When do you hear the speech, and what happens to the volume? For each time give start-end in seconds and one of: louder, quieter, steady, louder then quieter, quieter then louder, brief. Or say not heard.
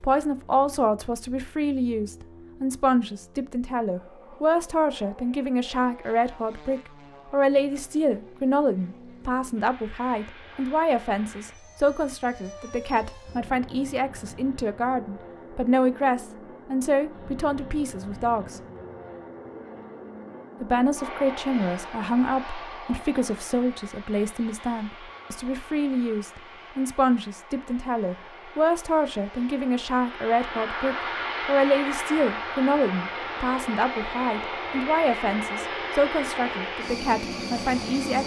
0.0-18.6 steady
20.6-38.2 steady.